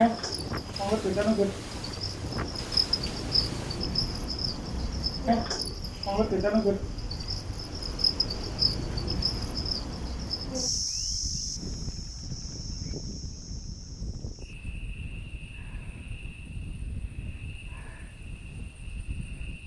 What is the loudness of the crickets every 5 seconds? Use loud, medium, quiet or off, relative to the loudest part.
loud, loud, medium, quiet.